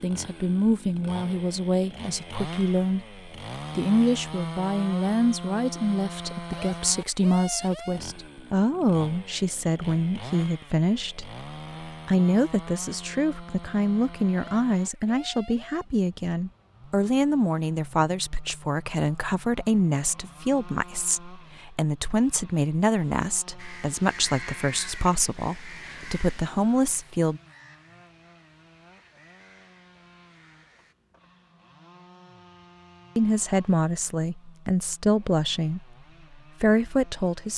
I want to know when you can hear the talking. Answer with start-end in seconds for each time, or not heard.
0.0-27.4, 33.1-37.5.